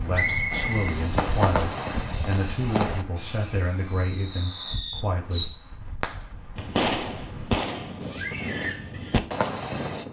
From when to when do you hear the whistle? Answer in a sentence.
The whistle can be heard from 0.1 to 0.9 s.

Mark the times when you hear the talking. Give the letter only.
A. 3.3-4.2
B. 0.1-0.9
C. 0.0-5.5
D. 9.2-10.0
C.